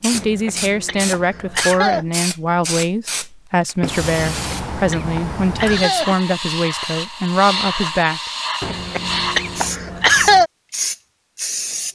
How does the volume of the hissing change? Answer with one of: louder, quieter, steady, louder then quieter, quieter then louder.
steady.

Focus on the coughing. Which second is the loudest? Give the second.
10 s.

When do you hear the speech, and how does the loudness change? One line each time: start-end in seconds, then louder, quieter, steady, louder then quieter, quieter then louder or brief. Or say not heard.
0.0-8.2 steady.